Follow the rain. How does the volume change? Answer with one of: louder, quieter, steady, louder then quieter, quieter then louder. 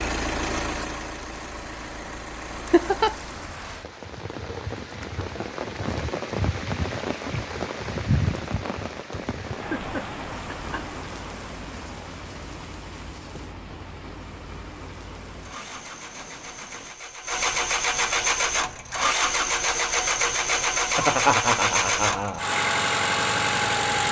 louder then quieter.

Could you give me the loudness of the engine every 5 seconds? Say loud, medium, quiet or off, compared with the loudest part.
medium, off, quiet, loud, loud.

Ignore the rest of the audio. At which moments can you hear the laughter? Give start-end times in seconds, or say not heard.
2.7-3.1, 9.6-10.8, 20.9-22.4.